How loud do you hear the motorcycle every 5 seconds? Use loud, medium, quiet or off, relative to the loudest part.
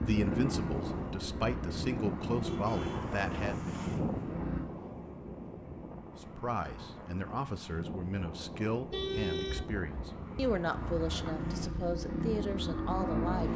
loud, off, loud.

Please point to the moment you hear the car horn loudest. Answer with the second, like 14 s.
9 s.